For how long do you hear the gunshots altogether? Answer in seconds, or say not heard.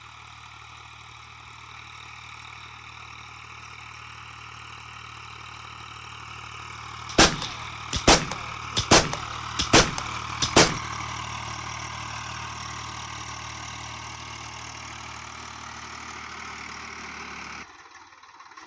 4 s.